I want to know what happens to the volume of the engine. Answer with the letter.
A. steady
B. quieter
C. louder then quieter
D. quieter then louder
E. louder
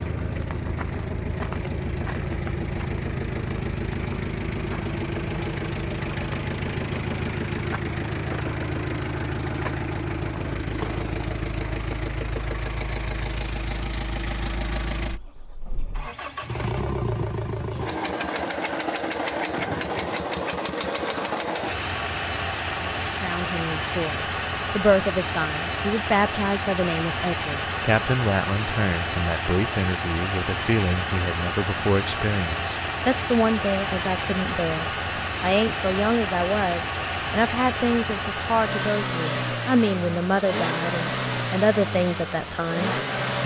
A.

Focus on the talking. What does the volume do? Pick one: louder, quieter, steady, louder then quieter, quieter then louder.
steady.